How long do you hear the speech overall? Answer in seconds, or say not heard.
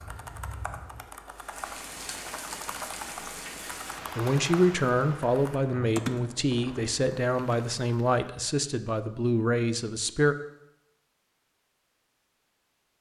6 s.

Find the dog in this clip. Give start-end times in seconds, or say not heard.
not heard.